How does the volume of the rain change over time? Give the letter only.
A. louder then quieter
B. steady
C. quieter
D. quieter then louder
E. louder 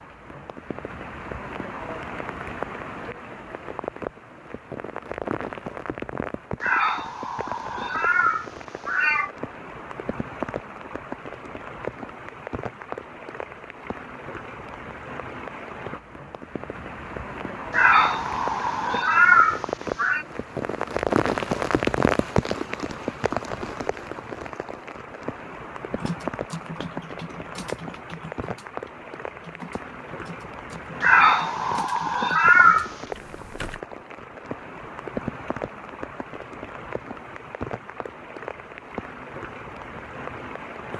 A.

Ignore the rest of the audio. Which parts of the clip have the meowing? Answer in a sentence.
The meowing can be heard from 6.6 to 9.3 s, from 17.7 to 20.2 s and from 31.0 to 32.9 s.